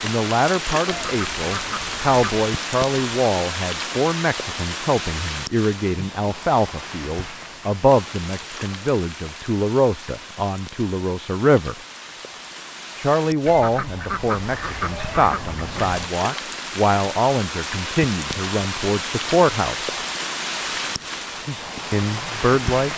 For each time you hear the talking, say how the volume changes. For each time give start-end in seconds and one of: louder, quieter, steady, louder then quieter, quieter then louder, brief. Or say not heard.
0.0-11.8 steady
12.9-19.9 steady
21.9-22.9 brief.